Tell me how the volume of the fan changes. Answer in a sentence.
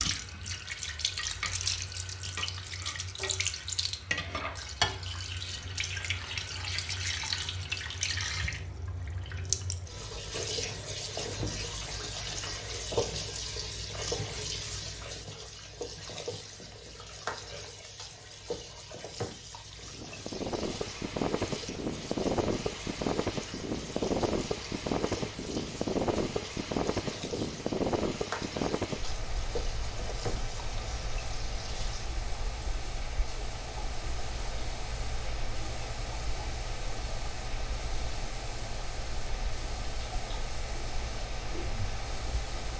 The loudness of the fan goes down.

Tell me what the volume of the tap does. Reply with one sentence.
The volume of the tap goes down.